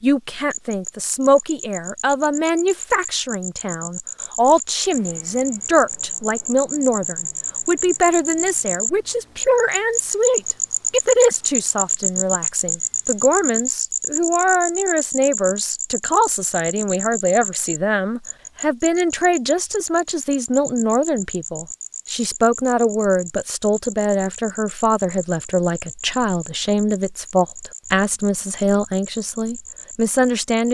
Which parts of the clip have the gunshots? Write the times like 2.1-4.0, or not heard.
not heard.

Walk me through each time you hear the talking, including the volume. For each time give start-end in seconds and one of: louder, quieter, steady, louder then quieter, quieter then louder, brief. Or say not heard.
0.0-30.6 steady.